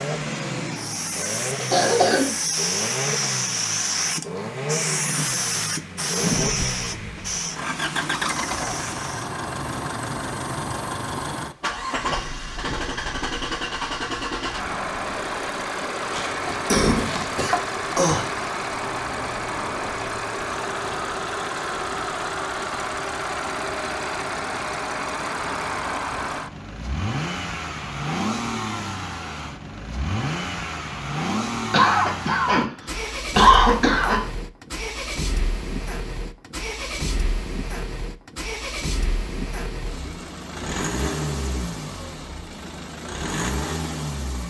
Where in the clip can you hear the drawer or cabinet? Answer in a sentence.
The drawer or cabinet can't be heard in this clip.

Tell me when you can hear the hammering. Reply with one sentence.
The hammering can't be heard in this clip.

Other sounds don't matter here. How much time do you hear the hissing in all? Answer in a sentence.
You can hear the hissing for 9 seconds altogether.